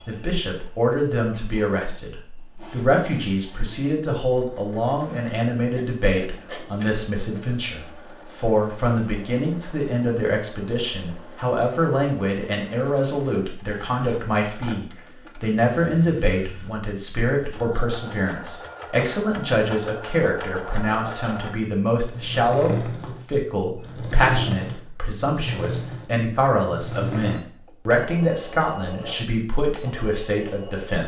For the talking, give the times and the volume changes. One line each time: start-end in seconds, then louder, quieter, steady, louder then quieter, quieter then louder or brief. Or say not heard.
0.1-31.0 steady.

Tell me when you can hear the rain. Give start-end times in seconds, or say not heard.
not heard.